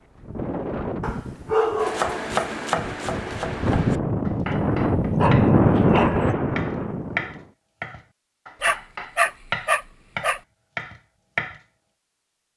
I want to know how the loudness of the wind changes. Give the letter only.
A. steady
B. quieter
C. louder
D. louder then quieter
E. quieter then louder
E.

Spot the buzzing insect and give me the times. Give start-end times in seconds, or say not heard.
not heard.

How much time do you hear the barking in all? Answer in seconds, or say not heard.
5 s.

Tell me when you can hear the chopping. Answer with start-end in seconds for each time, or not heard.
1.8-11.6.